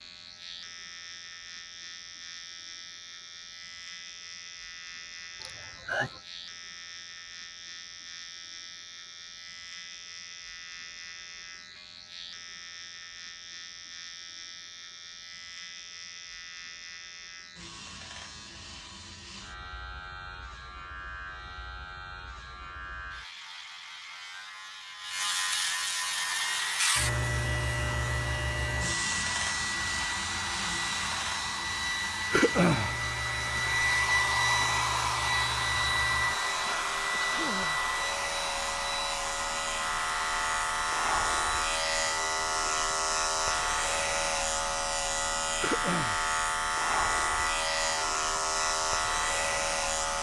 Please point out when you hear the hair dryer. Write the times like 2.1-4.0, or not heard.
26.0-50.1.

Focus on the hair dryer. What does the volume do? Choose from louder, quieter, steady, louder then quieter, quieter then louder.
louder then quieter.